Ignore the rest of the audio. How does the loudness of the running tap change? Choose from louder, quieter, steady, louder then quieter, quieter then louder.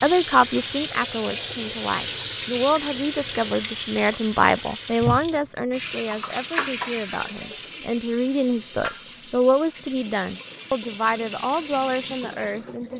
quieter.